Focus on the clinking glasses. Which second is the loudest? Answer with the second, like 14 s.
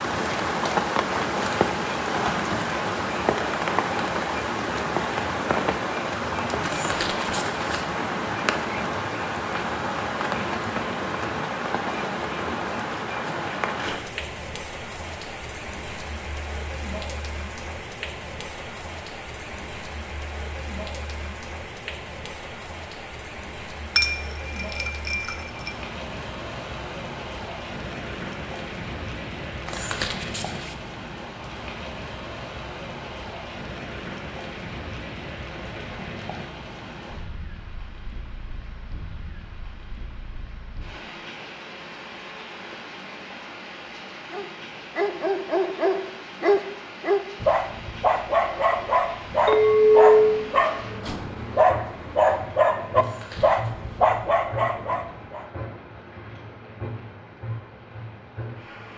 50 s.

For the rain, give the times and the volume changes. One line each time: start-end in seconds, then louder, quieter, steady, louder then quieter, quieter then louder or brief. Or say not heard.
0.0-58.9 quieter.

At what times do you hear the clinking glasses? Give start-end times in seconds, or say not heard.
23.9-25.7, 49.5-50.1.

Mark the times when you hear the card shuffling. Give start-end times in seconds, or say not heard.
6.7-7.8, 29.6-30.8, 53.0-53.7.